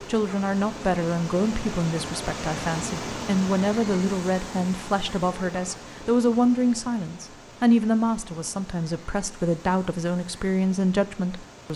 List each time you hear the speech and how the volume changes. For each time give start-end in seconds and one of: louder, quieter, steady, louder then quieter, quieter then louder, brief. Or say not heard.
0.1-11.7 steady.